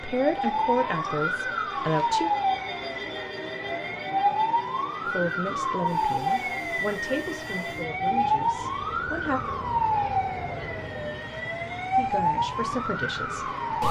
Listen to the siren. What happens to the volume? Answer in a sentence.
The volume of the siren stays about the same.